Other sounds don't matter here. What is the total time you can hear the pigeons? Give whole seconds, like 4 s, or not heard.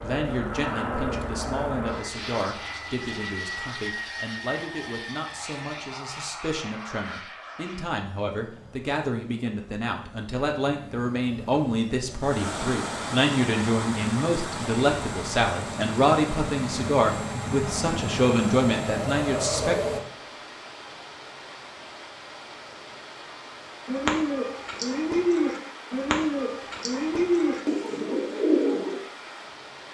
5 s.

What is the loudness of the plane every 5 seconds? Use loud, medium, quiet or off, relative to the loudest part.
loud, medium, medium, loud, off, off.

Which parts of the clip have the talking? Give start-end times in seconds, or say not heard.
0.0-19.8.